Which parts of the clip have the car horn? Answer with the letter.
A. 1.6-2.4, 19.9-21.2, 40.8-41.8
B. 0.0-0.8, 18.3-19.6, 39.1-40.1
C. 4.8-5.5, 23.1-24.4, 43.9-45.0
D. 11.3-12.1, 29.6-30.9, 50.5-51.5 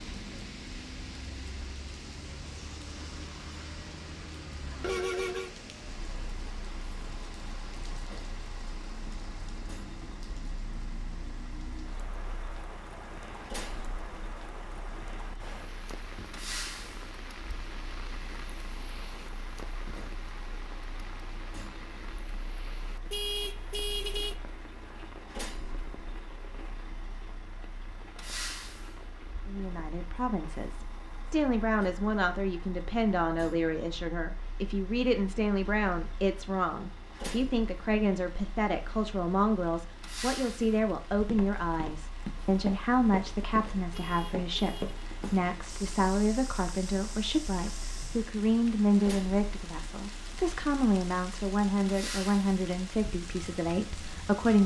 C.